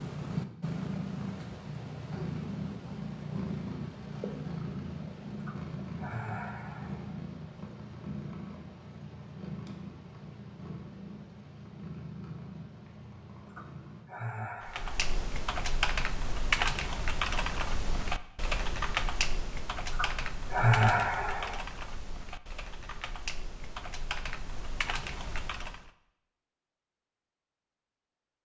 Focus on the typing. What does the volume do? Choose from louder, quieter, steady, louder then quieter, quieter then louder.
quieter.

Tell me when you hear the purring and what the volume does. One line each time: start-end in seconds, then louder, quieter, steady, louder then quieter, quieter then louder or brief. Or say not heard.
0.0-14.1 quieter.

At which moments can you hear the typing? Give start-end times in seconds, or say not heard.
14.6-25.9.